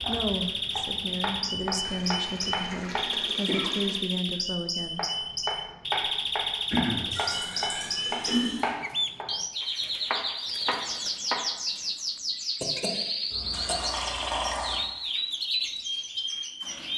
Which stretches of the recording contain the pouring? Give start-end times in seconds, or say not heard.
1.8-4.0, 7.1-8.8, 13.3-14.8.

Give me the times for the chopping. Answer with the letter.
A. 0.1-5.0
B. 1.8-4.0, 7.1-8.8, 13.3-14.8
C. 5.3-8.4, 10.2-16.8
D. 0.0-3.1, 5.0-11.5
D.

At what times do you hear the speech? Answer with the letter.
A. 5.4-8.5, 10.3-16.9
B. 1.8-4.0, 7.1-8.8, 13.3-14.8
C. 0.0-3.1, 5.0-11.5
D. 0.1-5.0
D.